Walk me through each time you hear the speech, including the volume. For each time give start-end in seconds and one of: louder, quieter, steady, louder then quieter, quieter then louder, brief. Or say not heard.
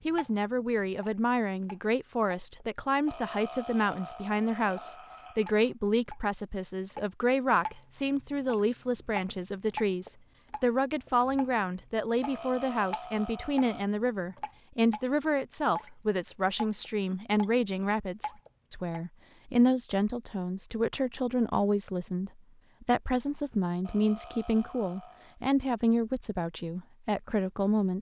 0.1-27.9 steady.